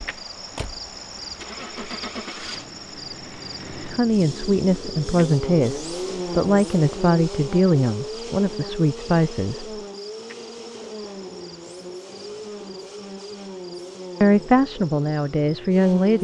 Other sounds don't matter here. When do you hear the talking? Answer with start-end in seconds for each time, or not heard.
3.9-9.8, 14.2-16.1.